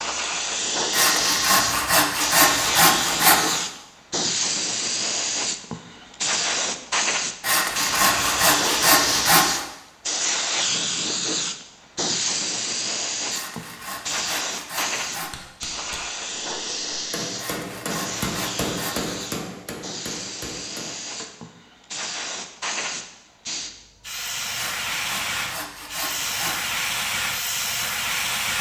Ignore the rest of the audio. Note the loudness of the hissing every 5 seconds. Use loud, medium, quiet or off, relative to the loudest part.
loud, loud, loud, medium, medium, loud.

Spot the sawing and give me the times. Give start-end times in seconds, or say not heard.
0.9-3.6, 7.4-9.7, 13.3-15.3, 17.4-19.3, 24.6-26.7.